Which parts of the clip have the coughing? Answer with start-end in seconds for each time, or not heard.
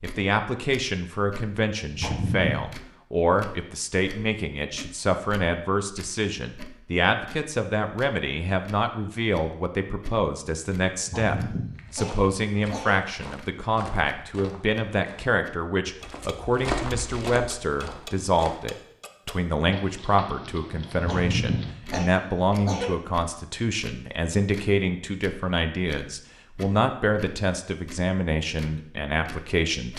1.9-2.7, 11.0-13.0, 20.9-22.9.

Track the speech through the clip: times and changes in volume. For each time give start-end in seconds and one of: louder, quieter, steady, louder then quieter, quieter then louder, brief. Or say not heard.
0.0-29.9 steady.